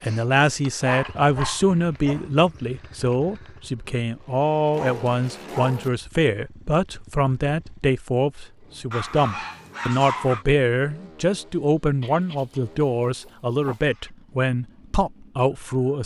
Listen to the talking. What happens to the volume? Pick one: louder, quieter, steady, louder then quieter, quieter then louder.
steady.